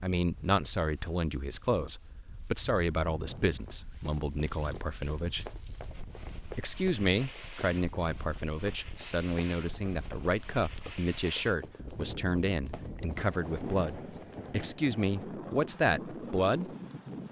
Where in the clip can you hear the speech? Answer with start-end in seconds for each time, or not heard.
0.0-5.5, 6.5-16.8.